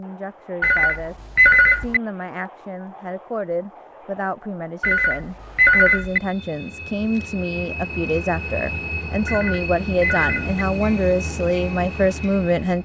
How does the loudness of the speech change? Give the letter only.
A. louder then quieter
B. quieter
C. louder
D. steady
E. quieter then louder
C.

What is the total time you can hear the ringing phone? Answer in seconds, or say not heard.
4 s.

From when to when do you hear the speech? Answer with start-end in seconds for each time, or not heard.
0.0-12.7.